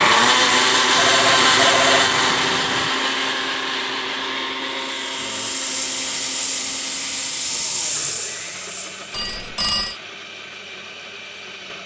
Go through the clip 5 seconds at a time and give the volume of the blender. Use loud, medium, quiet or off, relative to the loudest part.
loud, quiet, quiet.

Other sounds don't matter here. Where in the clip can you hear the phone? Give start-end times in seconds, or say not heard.
0.9-2.9, 9.1-9.9.